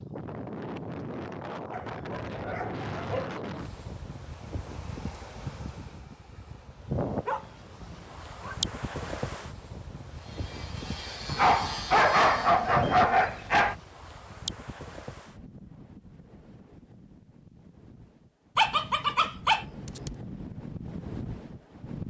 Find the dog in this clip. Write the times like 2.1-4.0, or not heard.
1.7-3.3, 7.0-8.6, 11.2-13.8, 18.6-20.2.